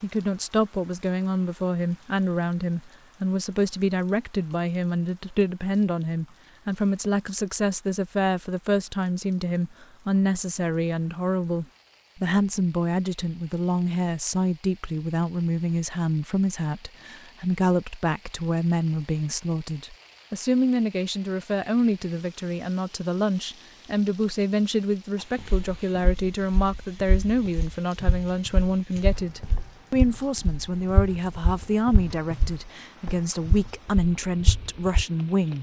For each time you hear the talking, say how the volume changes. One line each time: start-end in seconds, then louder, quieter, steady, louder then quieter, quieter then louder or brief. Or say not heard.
0.0-35.5 steady.